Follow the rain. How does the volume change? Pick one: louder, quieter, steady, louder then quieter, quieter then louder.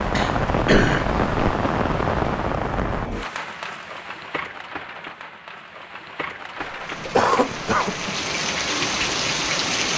quieter then louder.